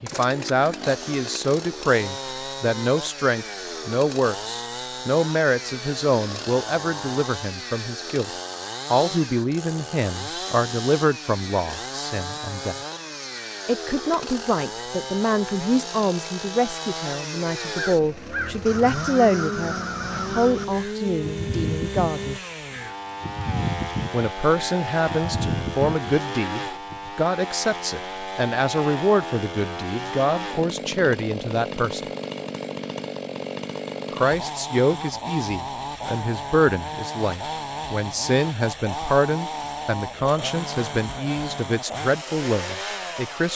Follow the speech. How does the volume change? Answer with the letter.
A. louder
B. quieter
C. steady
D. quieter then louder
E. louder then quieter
C.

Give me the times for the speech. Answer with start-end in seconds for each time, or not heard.
0.0-8.3, 8.9-12.8, 13.7-22.4, 24.1-32.0, 34.1-43.5.